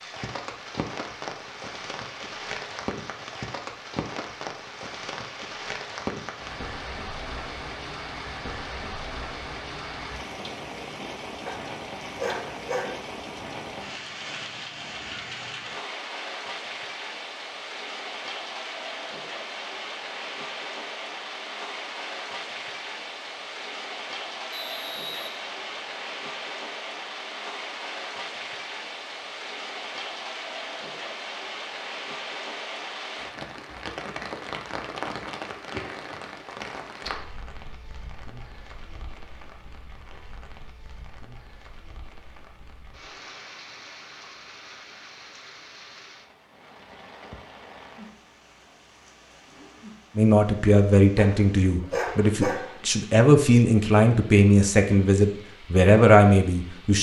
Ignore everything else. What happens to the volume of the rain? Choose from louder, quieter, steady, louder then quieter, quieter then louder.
quieter.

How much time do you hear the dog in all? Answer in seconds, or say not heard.
3 s.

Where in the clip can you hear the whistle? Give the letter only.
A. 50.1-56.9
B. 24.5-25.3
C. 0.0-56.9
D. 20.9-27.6
B.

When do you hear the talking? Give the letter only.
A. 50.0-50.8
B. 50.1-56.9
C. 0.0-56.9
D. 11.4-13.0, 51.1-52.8
B.